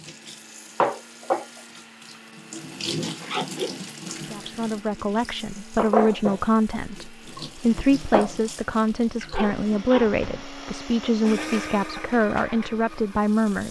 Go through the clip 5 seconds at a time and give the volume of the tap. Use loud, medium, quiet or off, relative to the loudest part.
loud, loud, quiet.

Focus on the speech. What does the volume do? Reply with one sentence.
The volume of the speech stays about the same.